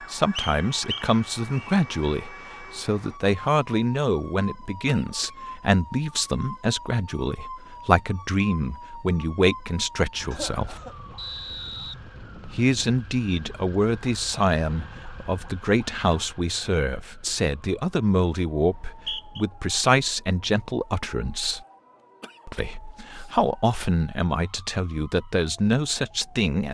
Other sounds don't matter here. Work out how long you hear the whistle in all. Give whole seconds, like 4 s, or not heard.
4 s.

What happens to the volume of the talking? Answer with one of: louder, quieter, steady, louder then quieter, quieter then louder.
steady.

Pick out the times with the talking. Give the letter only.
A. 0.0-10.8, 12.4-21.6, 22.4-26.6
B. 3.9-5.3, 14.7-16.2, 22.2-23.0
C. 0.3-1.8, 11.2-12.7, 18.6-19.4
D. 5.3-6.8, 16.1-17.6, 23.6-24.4
A.